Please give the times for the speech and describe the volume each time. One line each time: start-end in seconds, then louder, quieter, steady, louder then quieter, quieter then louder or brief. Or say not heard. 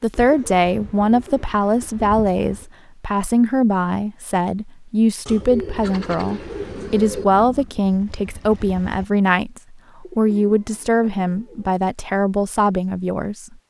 0.0-13.6 steady.